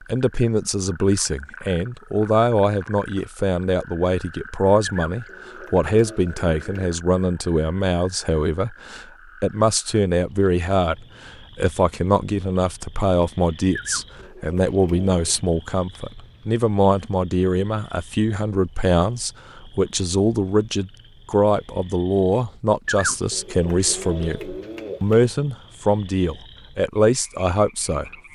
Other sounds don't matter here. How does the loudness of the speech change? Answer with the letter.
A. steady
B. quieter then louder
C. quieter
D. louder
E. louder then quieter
A.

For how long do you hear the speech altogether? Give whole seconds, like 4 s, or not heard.
28 s.